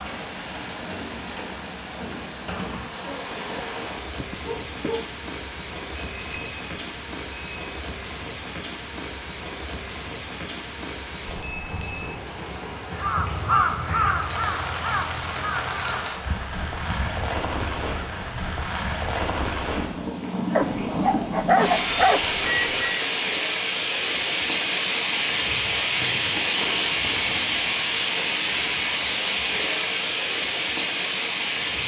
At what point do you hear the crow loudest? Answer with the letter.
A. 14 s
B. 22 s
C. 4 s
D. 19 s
A.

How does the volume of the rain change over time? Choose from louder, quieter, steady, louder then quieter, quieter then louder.
louder.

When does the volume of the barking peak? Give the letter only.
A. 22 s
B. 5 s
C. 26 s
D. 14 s
A.